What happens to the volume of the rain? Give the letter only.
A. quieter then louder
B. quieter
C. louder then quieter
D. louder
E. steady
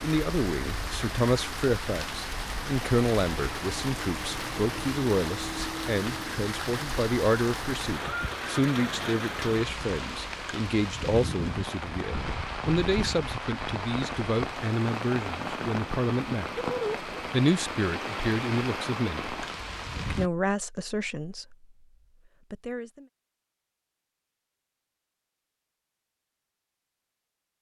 E.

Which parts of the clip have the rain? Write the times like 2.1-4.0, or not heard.
0.0-20.3.